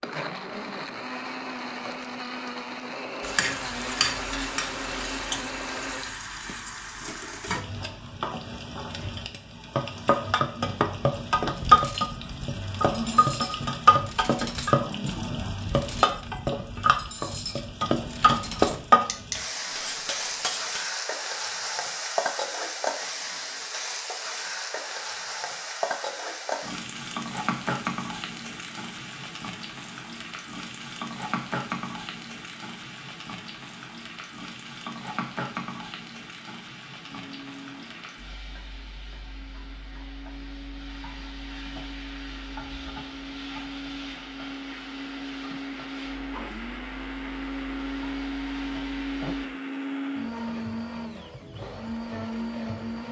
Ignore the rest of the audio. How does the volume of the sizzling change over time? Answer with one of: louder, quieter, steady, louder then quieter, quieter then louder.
quieter.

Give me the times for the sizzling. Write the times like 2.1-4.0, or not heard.
3.2-49.5.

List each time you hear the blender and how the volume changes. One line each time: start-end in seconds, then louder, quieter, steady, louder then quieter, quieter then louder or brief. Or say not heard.
0.0-6.2 steady
37.0-53.0 louder.